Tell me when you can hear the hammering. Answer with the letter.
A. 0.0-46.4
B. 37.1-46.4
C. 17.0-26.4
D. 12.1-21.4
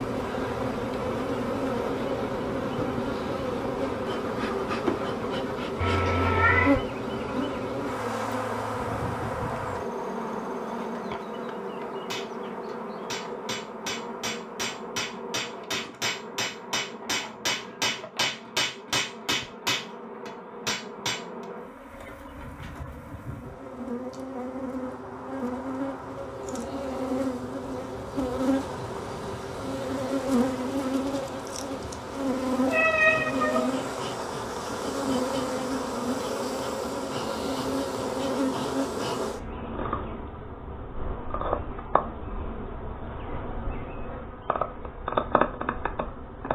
D.